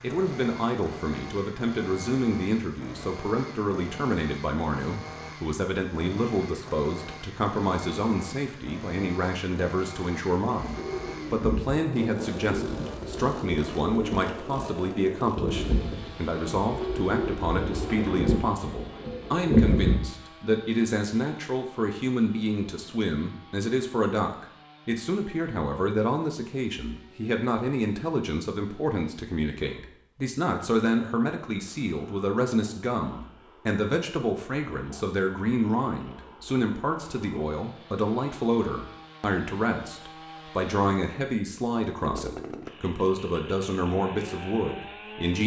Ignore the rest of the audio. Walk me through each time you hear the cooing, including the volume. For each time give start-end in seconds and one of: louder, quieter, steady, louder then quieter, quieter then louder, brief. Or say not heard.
10.8-20.0 louder.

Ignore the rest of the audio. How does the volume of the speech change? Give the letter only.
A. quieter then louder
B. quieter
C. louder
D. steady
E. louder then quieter
D.